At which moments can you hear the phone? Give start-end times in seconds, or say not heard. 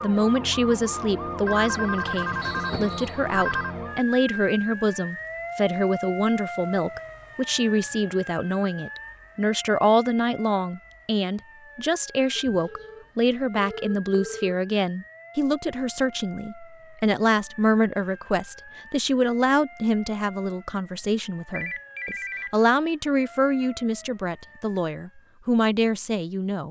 1.4-3.8, 12.3-14.6, 21.5-22.6.